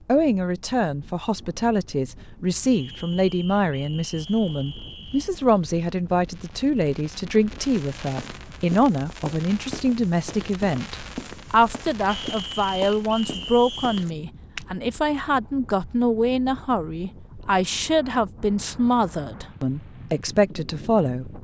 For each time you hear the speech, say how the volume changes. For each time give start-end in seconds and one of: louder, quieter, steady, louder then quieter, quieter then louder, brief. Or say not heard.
0.1-21.3 steady.